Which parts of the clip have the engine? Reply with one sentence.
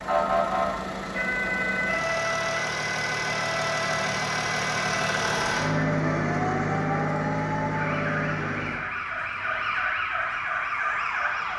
You can hear the engine from 0.0 to 8.8 s.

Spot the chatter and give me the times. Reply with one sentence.
You can't hear the chatter here.